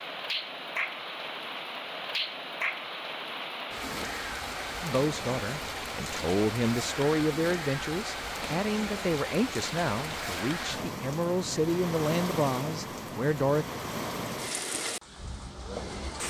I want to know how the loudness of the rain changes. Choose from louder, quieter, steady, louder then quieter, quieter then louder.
steady.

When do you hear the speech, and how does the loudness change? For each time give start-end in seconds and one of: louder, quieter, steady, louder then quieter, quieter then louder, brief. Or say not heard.
4.8-13.7 steady.